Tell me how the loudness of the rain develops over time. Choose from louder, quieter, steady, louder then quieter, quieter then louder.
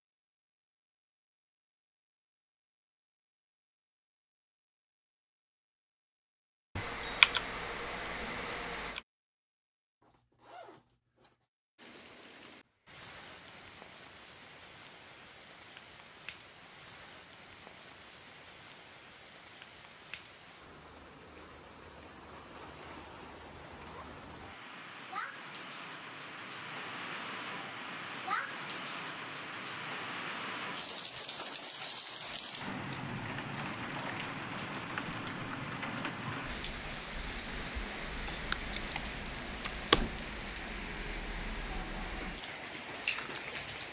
louder.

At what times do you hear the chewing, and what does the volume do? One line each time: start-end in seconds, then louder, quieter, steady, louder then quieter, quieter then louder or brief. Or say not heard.
not heard.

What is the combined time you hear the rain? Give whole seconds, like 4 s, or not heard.
32 s.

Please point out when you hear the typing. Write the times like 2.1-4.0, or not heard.
6.8-9.0, 38.3-40.0.